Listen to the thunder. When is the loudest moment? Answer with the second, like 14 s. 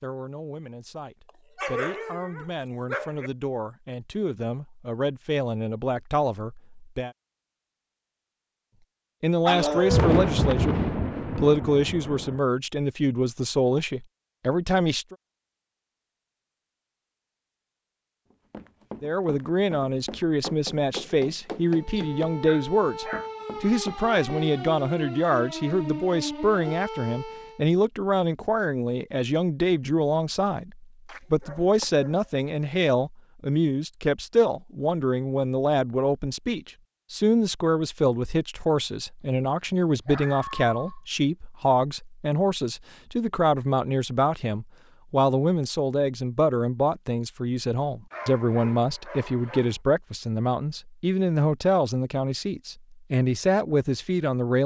10 s.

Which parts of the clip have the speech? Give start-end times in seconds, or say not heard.
0.0-7.1, 9.2-15.2, 19.0-54.6.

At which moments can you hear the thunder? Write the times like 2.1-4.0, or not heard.
9.7-12.4.